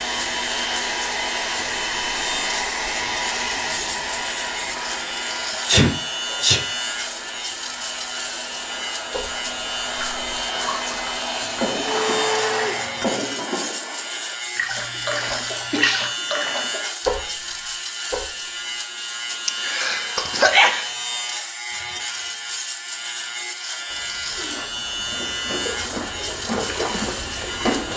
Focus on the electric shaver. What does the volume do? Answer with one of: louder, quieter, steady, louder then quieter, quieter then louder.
steady.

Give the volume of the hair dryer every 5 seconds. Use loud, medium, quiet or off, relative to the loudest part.
loud, medium, loud, off, off, off.